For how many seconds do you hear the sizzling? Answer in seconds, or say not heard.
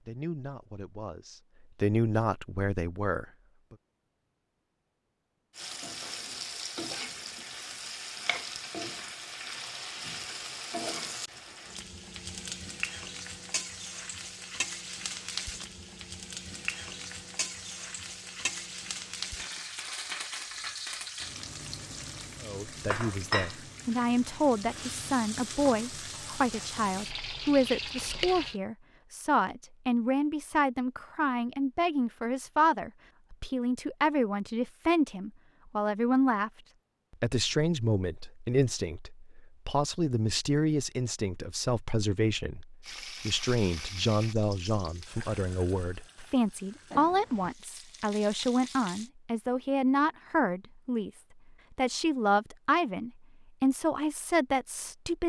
29 s.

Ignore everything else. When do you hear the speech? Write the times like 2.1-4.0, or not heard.
0.0-3.8, 22.4-36.5, 37.2-55.2.